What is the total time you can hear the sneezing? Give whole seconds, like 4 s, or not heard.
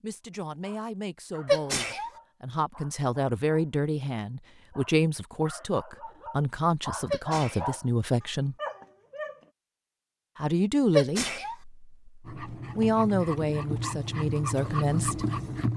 2 s.